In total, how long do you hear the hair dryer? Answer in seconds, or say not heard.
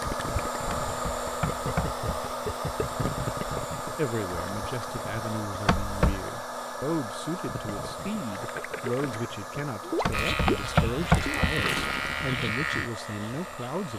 14 s.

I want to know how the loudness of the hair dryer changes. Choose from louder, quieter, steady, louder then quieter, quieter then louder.
quieter.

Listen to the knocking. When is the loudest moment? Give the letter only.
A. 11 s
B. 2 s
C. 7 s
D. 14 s
A.